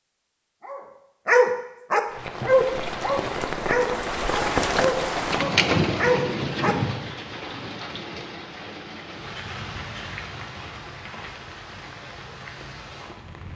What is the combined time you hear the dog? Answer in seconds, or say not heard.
6 s.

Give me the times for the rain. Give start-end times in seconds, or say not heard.
2.0-13.5.